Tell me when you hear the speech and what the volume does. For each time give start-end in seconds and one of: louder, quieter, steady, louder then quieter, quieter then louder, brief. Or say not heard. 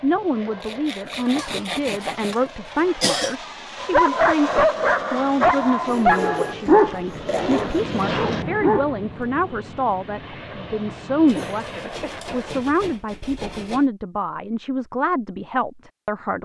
0.0-16.4 steady.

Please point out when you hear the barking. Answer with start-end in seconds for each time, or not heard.
3.8-8.9.